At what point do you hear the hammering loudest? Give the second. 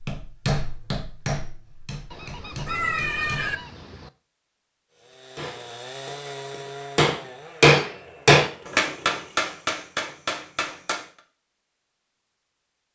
8 s.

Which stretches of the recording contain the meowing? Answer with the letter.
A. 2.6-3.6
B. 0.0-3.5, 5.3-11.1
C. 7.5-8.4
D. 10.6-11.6
A.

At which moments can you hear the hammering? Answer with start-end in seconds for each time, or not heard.
0.0-3.5, 5.3-11.1.